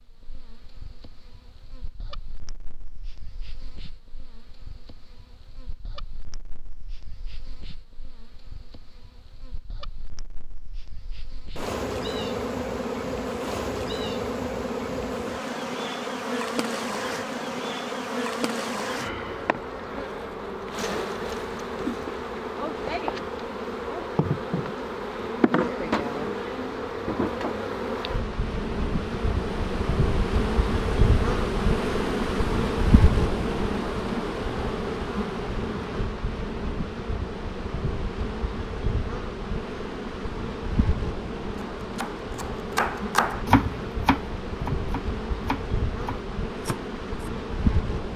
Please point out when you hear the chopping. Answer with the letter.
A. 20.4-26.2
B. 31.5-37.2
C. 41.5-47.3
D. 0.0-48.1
C.